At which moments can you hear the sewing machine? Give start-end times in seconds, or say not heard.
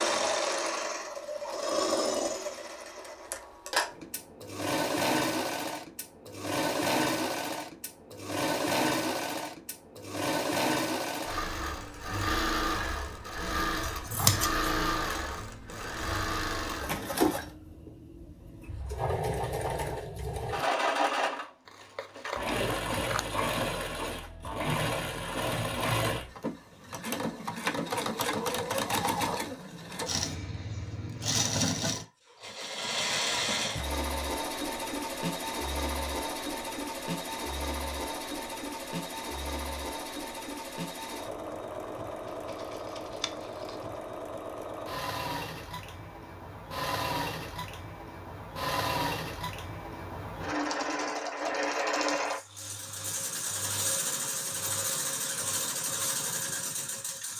0.0-57.3.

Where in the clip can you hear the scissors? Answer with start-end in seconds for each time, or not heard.
13.8-14.7, 21.6-23.2, 42.2-43.9.